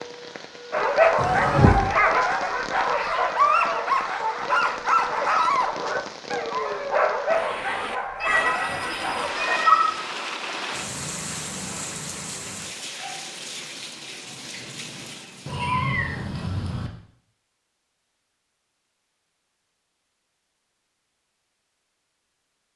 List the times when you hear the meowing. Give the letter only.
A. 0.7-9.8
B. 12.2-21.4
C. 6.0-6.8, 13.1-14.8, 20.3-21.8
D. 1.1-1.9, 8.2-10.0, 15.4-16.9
D.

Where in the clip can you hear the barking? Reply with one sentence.
You can hear the barking from 0.7 to 9.8 s.